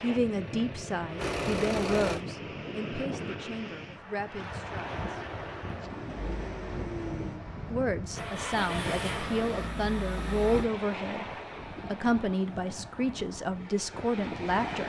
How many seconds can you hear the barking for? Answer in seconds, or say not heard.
not heard.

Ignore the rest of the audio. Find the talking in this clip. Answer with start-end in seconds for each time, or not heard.
0.0-5.0, 7.7-11.2, 11.8-14.8.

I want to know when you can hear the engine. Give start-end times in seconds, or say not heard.
0.0-2.2, 4.7-10.7.